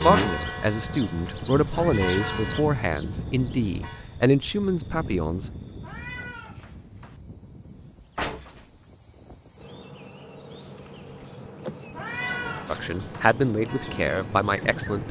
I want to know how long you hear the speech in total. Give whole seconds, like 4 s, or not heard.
8 s.